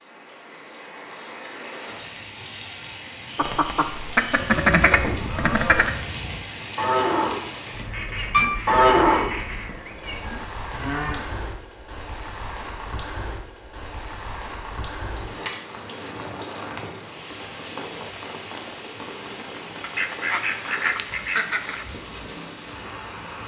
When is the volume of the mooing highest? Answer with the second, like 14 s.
9 s.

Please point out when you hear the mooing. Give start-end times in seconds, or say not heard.
4.3-11.3.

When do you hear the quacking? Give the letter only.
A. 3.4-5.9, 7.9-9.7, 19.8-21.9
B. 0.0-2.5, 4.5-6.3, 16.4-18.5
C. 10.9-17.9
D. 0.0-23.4
A.